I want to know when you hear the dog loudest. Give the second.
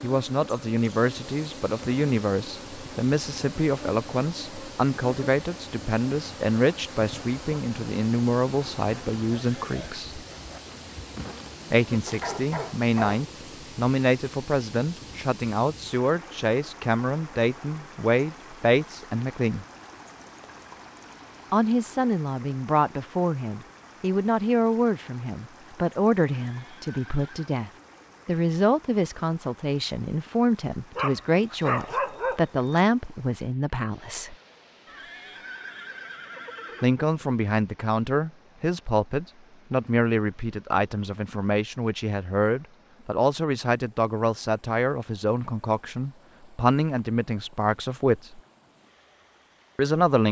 32 s.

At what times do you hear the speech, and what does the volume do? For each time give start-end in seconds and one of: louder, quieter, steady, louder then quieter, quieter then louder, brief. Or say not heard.
0.0-10.2 steady
11.7-19.6 steady
21.5-34.4 steady
36.8-48.4 steady
49.8-50.2 brief.